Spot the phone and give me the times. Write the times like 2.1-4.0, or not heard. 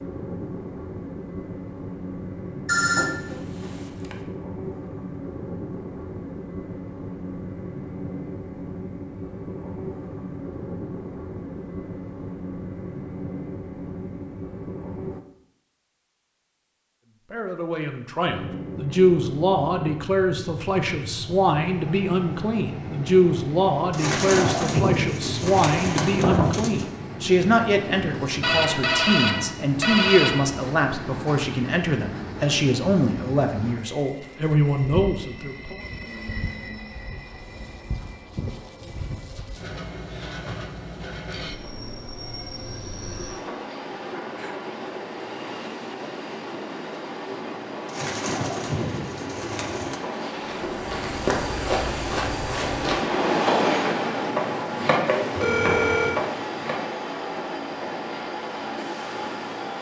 2.6-4.2, 28.4-30.5, 55.4-56.2.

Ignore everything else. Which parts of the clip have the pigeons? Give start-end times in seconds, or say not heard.
23.9-26.9, 47.9-50.0.